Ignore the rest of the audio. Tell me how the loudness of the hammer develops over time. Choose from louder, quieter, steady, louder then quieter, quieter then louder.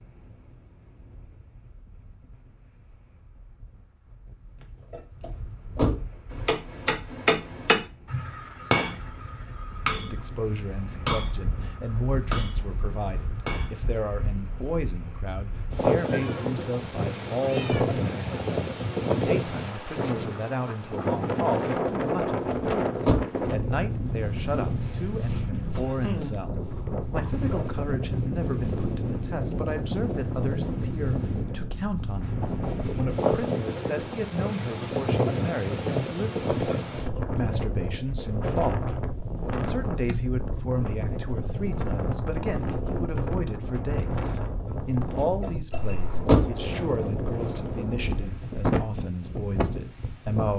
quieter.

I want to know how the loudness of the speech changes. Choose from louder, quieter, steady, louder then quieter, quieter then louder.
steady.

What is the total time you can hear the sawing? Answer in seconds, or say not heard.
not heard.